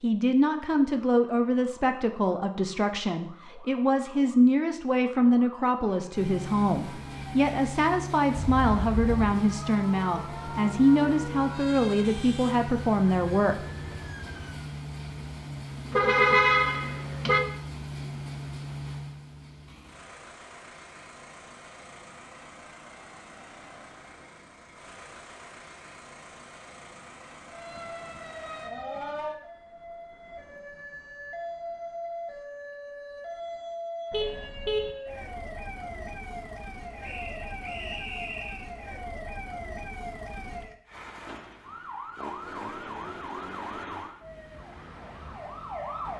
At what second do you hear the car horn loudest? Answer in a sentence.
The loudest moment of the car horn is at 16 seconds.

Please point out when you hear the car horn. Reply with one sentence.
You can hear the car horn from 8.3 to 9.4 s, from 15.9 to 17.4 s and from 34.1 to 35.0 s.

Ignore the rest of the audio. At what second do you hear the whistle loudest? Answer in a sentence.
The loudest moment of the whistle is at 38 seconds.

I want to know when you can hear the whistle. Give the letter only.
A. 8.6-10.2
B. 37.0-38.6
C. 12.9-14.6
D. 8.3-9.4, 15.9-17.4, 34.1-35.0
B.